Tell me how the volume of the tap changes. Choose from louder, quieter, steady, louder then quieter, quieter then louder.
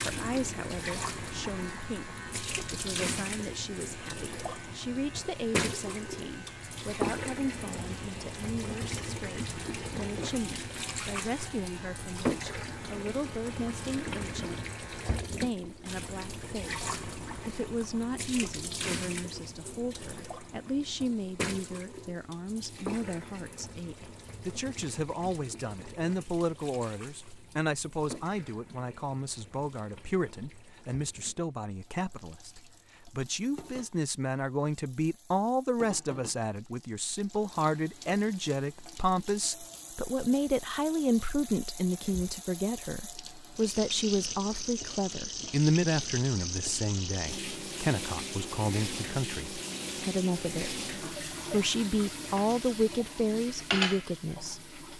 quieter then louder.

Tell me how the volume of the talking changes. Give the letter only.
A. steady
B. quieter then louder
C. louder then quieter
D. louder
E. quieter
D.